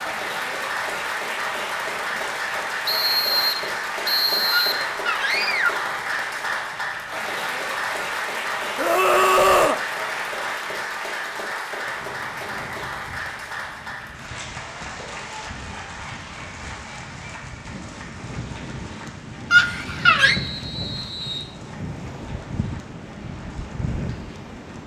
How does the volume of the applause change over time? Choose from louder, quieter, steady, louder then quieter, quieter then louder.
quieter.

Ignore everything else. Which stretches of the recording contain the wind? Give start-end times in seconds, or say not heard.
11.8-24.8.